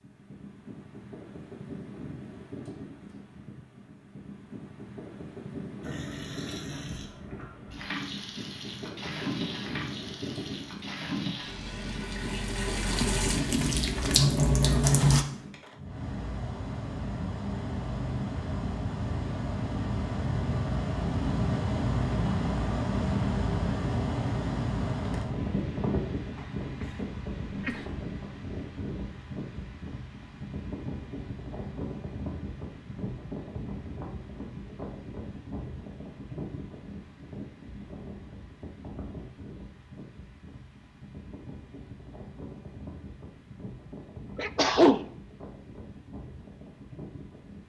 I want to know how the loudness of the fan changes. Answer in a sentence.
The volume of the fan goes up, then down.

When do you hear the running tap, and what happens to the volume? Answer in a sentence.
You can hear the running tap from 5.8 to 15.2 s, getting louder.